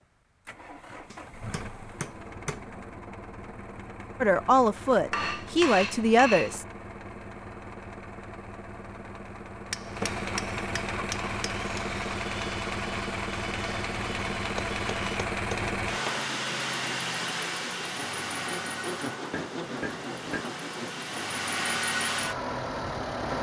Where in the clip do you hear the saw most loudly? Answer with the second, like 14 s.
19 s.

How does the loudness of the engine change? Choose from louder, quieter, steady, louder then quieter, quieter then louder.
louder.